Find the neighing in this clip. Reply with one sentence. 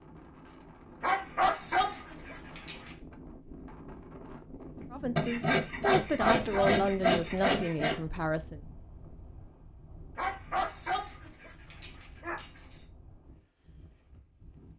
You can't hear the neighing here.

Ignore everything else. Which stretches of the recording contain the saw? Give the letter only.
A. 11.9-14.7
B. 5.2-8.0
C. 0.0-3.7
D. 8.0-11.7
B.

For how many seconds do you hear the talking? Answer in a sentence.
You can hear the talking for 4 seconds altogether.